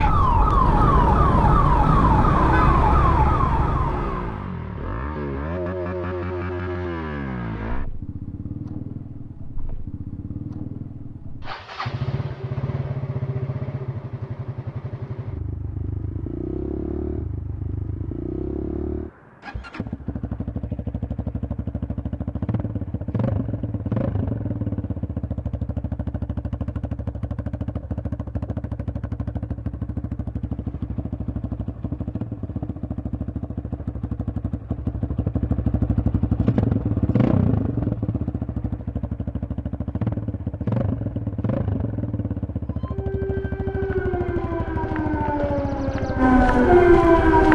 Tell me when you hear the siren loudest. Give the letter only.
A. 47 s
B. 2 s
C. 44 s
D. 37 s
A.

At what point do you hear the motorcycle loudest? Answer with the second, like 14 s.
37 s.